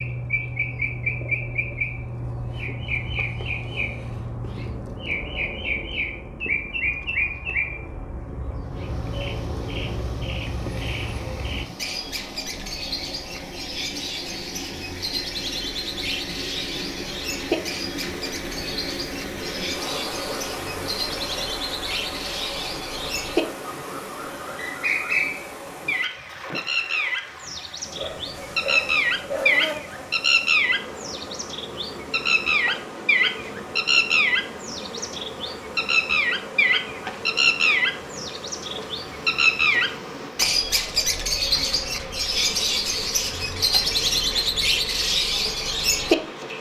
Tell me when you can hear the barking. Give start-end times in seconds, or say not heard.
27.9-29.6.